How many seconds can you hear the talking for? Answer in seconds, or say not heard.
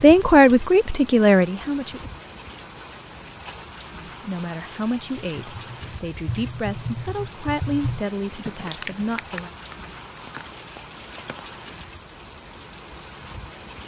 8 s.